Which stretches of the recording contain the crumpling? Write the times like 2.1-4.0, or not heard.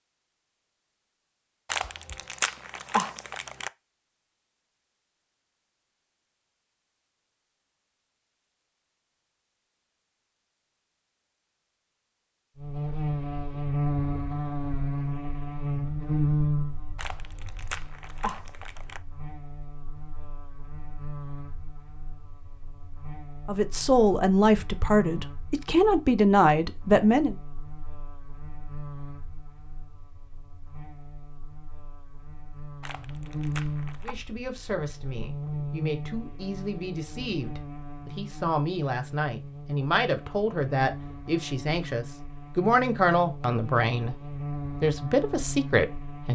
1.7-3.7, 16.9-19.0, 32.8-34.1.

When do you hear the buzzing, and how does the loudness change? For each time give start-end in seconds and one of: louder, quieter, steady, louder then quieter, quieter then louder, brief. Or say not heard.
12.6-46.2 quieter then louder.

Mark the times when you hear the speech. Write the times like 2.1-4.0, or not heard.
23.4-27.4, 34.0-46.2.